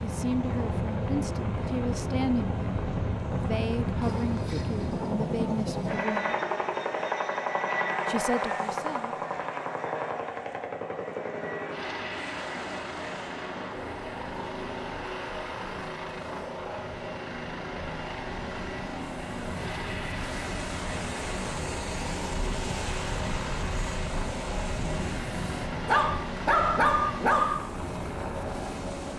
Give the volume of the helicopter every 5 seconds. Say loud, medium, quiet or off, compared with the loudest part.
loud, loud, medium, medium, medium, medium.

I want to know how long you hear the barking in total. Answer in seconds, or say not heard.
4 s.